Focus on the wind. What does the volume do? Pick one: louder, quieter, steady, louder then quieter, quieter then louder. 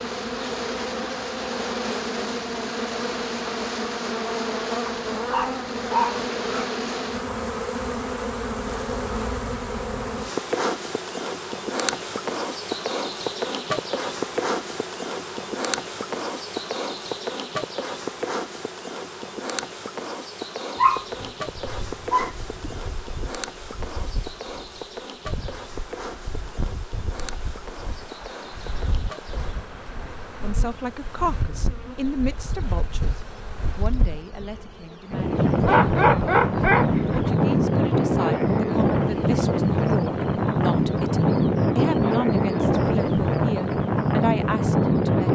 louder.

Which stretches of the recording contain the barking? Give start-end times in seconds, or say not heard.
4.8-6.7, 20.8-22.7, 35.6-37.3.